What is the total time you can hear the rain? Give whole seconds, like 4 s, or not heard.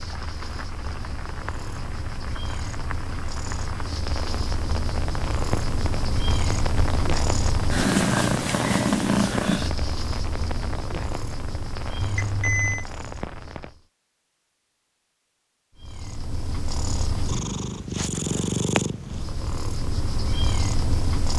14 s.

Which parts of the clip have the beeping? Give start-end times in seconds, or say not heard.
12.0-12.8.